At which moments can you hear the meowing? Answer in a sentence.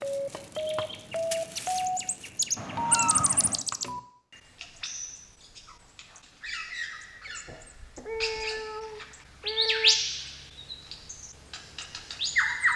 The meowing can be heard from 2.5 to 3.6 s and from 7.2 to 10.0 s.